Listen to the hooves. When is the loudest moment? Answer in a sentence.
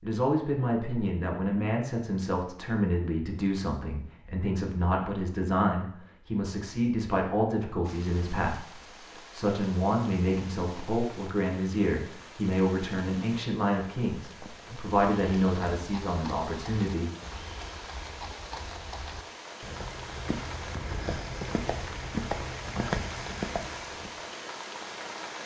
The loudest moment of the hooves is at 23 seconds.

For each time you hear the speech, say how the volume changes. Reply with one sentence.
You can hear the speech from 0.0 to 17.1 s, at a steady volume.